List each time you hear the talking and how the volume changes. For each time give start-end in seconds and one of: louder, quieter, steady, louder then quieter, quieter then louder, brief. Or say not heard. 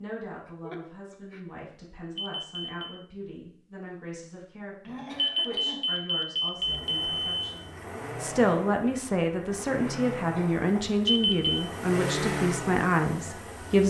0.0-13.8 louder.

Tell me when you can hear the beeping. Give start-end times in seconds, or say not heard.
2.1-3.0, 5.2-7.3, 11.1-11.6.